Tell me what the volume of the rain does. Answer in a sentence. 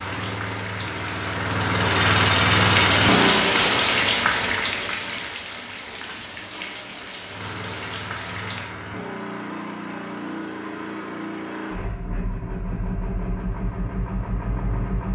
The loudness of the rain goes up, then down.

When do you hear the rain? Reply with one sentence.
You can hear the rain from 0.0 to 8.7 s.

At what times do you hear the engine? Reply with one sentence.
The engine can be heard from 0.0 to 3.5 s and from 7.2 to 15.0 s.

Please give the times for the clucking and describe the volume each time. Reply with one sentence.
The clucking can't be heard in this clip.